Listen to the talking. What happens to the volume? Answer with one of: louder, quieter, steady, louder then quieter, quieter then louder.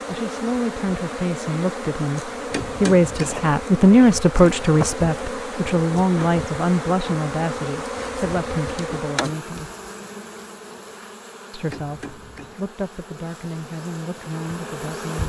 louder then quieter.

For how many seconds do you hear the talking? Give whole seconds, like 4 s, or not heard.
13 s.